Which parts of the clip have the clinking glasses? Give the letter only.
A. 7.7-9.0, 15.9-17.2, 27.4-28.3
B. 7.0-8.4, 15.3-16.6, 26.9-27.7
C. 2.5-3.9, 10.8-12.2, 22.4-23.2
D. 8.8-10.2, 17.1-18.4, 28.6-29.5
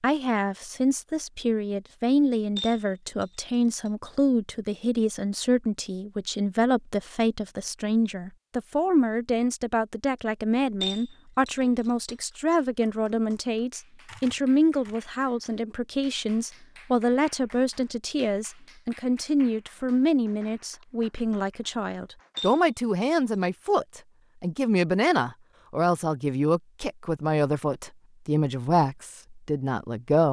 C.